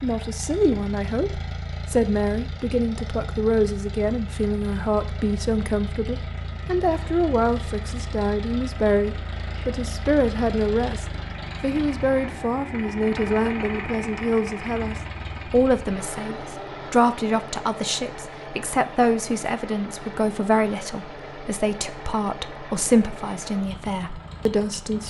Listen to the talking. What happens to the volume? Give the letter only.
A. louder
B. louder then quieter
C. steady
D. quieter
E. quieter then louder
C.